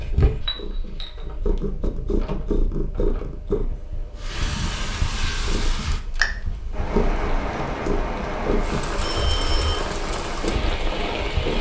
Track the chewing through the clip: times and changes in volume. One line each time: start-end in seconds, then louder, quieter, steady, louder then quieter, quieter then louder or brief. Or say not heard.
not heard.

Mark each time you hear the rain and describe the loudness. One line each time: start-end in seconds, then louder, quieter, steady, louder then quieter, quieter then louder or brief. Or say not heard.
4.2-11.5 steady.